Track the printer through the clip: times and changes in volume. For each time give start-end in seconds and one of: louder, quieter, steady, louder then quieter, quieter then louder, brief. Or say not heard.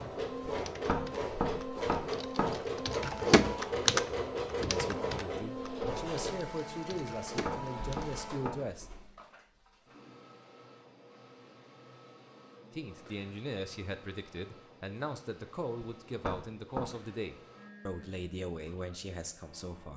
0.0-19.9 quieter.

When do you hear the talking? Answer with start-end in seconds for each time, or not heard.
4.6-8.8, 12.7-19.9.